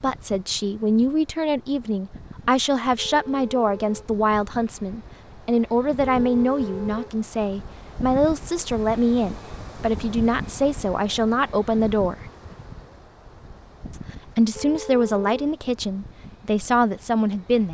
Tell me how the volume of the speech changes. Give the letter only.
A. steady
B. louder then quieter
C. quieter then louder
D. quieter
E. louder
A.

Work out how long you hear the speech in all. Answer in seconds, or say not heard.
16 s.